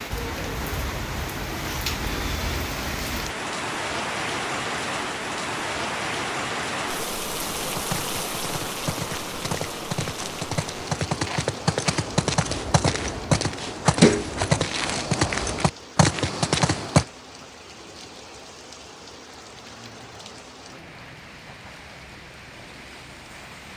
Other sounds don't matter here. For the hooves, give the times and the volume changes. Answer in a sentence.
You can hear the hooves from 7.5 to 17.1 s, getting louder.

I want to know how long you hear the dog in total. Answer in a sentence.
The dog can't be heard in this clip.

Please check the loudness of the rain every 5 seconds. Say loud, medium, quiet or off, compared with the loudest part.
loud, loud, medium, quiet, quiet.